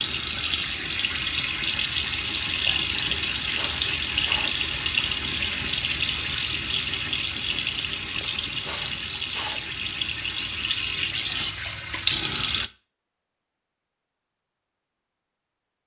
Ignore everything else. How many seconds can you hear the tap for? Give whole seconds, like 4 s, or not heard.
13 s.